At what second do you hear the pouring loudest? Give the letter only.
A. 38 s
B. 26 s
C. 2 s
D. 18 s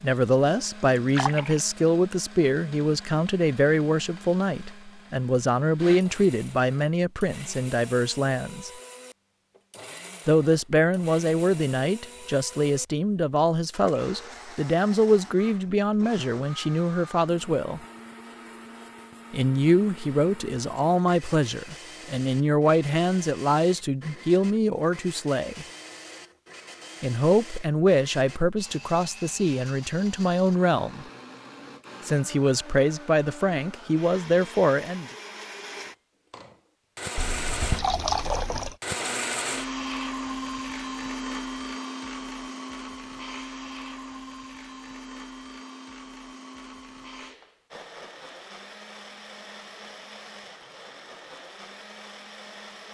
A.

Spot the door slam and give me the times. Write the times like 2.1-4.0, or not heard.
not heard.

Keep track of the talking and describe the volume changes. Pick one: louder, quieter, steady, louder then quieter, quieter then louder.
steady.